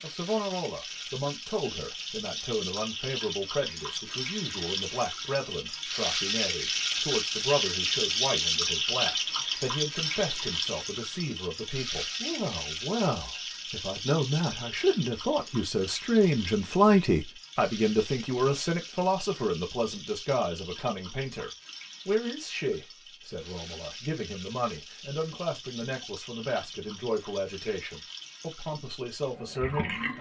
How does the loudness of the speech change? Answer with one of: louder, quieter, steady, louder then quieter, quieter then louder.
louder then quieter.